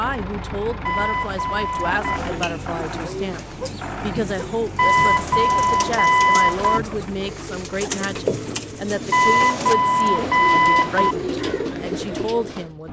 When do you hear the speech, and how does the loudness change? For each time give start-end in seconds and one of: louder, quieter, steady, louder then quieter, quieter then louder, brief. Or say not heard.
0.0-12.8 steady.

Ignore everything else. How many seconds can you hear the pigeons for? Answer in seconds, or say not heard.
11 s.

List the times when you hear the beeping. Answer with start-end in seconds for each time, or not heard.
0.8-2.2, 4.8-6.8, 9.1-11.2.